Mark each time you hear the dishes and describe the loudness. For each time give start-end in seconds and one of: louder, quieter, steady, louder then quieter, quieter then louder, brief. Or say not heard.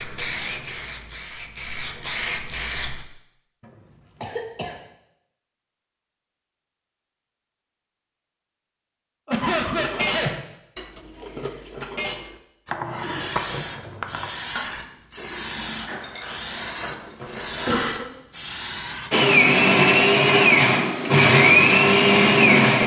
9.6-17.8 quieter.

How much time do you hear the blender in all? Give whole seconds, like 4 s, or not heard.
4 s.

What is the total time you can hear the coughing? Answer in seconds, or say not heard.
3 s.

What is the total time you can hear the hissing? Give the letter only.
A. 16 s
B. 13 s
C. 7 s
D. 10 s
B.